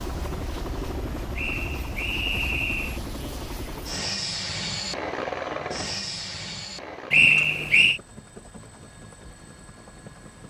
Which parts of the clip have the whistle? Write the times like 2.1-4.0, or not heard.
1.4-3.0, 7.1-8.0.